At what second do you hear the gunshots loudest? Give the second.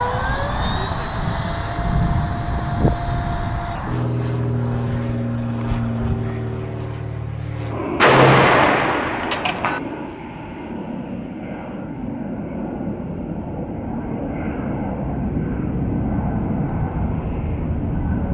8 s.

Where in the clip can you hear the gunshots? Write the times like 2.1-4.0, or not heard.
8.0-9.8.